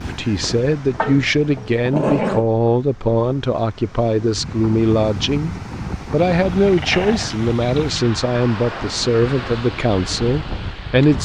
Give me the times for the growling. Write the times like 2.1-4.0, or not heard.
0.9-2.5, 6.3-8.2.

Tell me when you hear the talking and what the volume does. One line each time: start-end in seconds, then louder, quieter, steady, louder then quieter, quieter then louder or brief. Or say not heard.
0.0-11.2 steady.